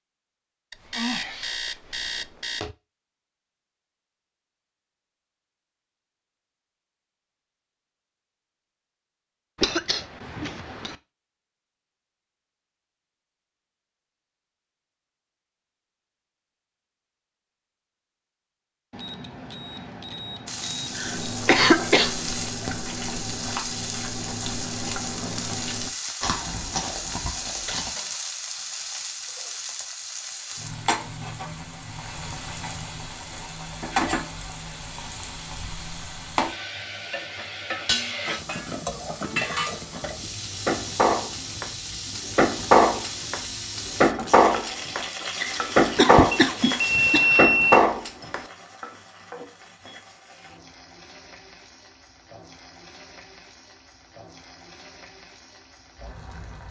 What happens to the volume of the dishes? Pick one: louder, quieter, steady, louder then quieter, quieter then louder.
louder.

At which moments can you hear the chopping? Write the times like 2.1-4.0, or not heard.
not heard.